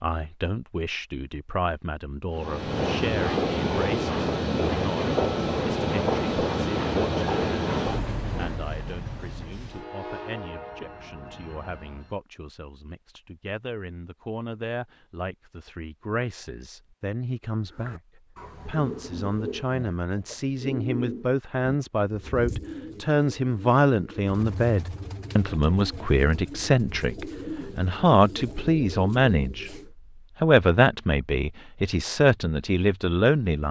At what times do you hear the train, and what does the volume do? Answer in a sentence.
The train can be heard from 2.3 to 12.0 s, getting quieter.